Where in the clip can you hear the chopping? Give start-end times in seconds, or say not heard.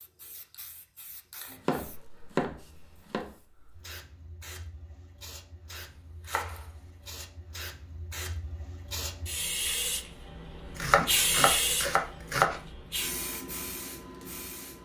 1.4-3.4, 5.7-7.2, 10.8-12.6.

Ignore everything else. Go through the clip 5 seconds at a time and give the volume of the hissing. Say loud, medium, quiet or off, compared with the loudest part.
quiet, medium, loud.